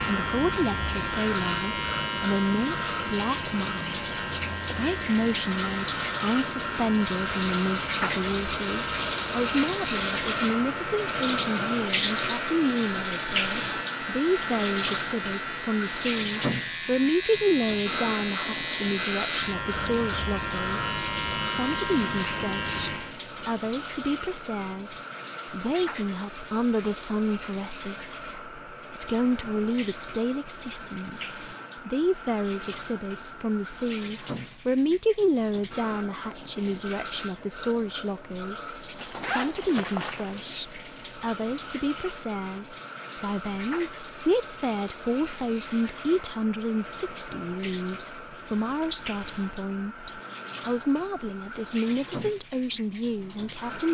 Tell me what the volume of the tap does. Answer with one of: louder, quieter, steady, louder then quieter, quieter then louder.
quieter.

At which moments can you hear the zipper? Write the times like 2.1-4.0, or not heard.
39.0-40.5.